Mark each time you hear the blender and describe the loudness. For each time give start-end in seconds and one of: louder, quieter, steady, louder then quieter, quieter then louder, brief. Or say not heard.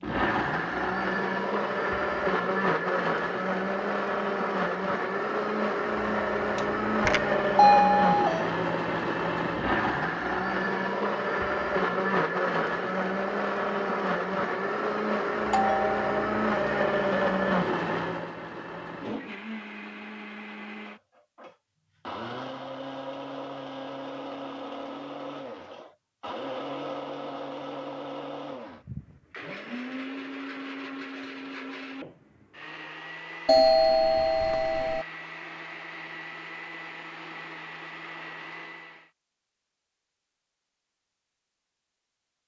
0.0-39.1 quieter.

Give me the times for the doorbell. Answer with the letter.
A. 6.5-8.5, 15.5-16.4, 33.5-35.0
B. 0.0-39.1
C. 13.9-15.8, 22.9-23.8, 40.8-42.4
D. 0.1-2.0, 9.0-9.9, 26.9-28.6
A.